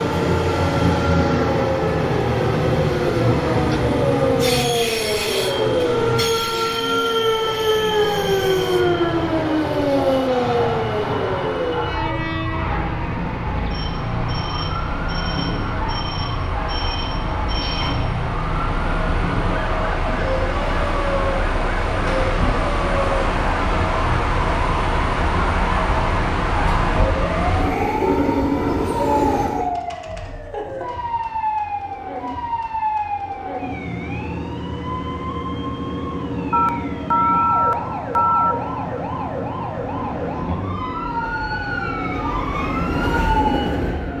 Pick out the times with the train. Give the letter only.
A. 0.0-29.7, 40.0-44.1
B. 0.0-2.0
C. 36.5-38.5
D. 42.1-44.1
A.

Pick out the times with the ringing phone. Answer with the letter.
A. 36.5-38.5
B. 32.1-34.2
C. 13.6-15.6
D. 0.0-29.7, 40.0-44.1
A.